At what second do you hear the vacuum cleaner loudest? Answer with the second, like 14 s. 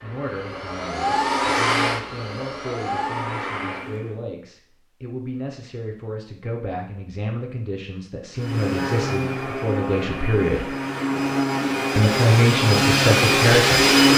14 s.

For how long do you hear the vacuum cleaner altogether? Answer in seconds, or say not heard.
10 s.